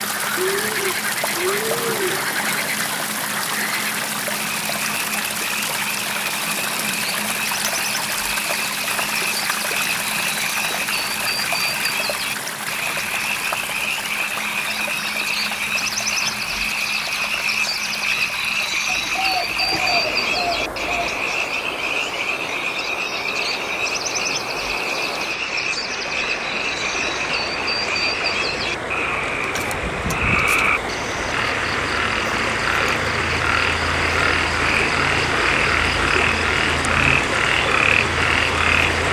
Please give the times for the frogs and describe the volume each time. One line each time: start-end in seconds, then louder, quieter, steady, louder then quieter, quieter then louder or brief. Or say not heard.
0.0-39.0 louder.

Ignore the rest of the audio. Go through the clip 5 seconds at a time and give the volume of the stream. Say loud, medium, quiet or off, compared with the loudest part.
loud, loud, medium, medium, medium, medium, loud, loud.